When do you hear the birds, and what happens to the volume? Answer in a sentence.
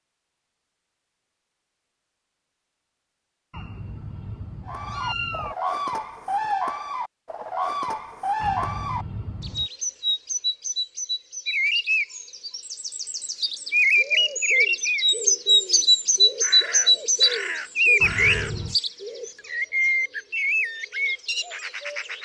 You can hear the birds from 4.7 to 22.2 s, getting louder then quieter.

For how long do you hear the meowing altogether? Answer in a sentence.
The meowing can be heard for 4 seconds in total.